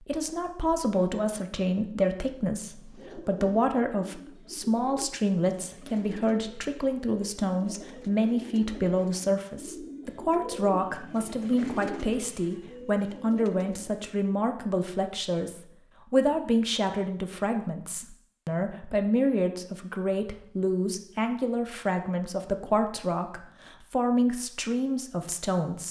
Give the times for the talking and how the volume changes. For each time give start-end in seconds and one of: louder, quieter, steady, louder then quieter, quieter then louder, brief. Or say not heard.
0.1-25.8 steady.